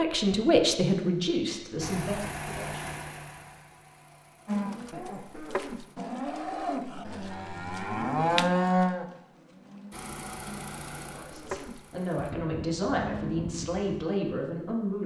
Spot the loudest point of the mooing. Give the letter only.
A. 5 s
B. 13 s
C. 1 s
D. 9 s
D.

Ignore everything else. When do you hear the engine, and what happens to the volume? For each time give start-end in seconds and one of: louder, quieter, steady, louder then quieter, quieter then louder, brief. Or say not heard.
1.8-6.0 quieter
9.9-12.3 brief.